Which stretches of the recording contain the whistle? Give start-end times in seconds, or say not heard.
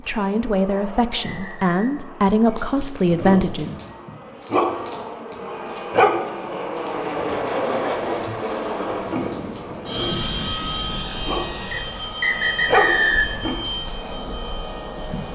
0.7-1.7, 11.7-13.3.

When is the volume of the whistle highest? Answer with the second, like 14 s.
13 s.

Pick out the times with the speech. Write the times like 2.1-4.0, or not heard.
0.0-3.8.